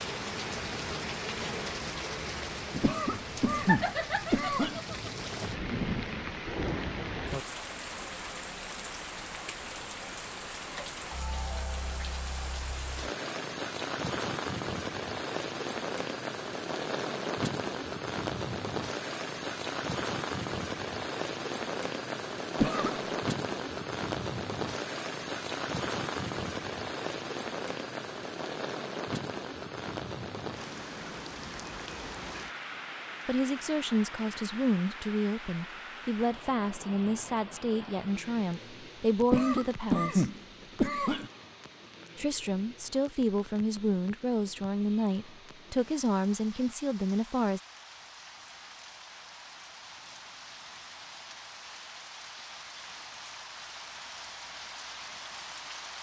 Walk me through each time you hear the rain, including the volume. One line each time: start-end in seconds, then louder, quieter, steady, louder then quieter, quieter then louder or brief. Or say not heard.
0.0-55.9 quieter.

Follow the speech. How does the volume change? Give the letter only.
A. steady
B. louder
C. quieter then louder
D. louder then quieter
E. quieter
A.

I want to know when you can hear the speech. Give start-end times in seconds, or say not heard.
33.2-40.2, 42.1-47.6.